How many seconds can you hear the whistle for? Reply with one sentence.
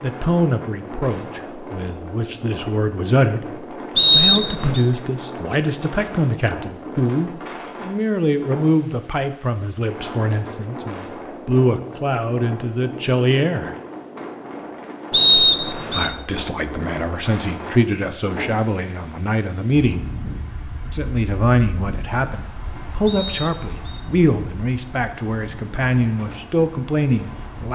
The whistle can be heard for 3 seconds in total.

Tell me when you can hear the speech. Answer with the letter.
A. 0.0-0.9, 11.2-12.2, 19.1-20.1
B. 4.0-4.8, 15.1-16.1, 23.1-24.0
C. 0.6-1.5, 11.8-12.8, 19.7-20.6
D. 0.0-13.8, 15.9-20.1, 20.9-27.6
D.